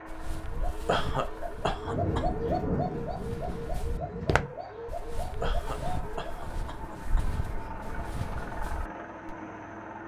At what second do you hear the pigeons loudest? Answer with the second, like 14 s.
2 s.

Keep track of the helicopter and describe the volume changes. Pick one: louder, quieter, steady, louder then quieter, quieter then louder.
louder.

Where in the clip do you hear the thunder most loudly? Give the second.
3 s.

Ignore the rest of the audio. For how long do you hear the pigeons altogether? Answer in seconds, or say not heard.
6 s.